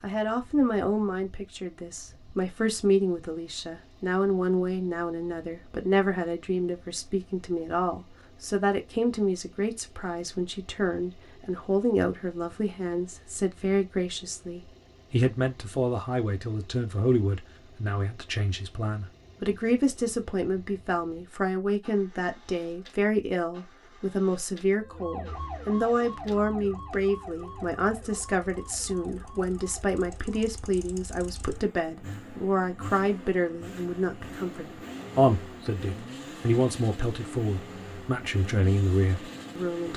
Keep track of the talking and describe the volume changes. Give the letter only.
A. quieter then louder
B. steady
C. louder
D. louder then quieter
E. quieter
B.